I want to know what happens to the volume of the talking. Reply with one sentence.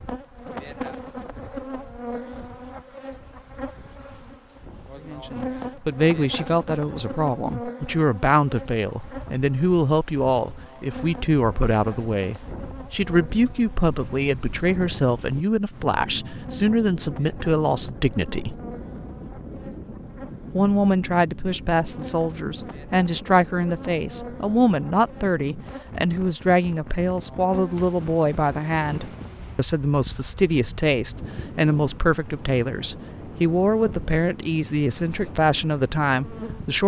The volume of the talking stays about the same.